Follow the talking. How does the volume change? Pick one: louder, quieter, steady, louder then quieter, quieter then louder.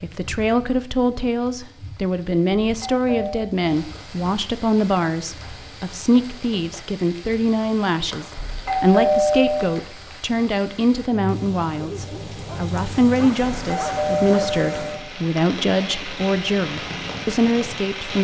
steady.